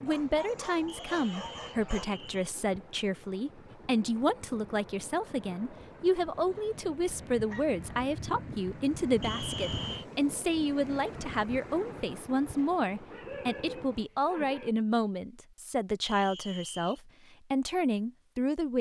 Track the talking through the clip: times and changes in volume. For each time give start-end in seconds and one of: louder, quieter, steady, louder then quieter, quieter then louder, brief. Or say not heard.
0.0-18.7 steady.